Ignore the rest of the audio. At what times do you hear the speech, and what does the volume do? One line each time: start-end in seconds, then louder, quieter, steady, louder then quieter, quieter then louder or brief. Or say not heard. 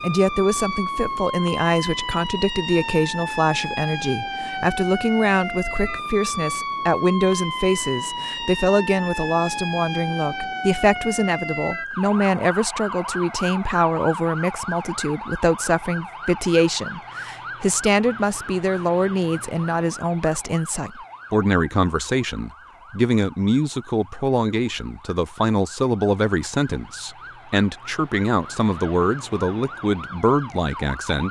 0.0-31.2 steady.